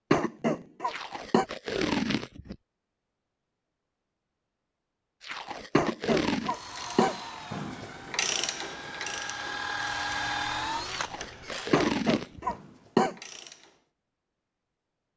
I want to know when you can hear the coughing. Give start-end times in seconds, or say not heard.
0.1-1.4, 5.8-7.2, 11.7-13.2.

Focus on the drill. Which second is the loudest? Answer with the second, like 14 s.
10 s.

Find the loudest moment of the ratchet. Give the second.
8 s.